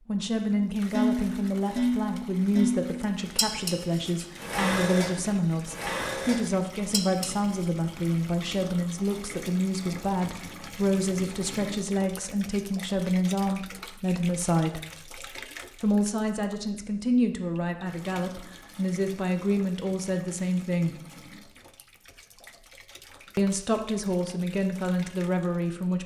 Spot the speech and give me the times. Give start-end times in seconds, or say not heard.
0.1-14.8, 15.8-20.9, 23.4-26.0.